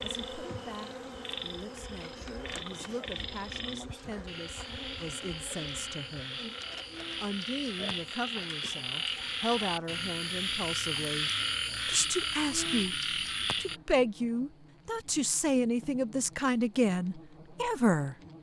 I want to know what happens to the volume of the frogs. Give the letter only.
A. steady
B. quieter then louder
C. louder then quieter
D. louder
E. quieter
D.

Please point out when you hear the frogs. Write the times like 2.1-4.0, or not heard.
0.0-13.8.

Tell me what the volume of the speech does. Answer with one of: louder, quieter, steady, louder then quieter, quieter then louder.
louder.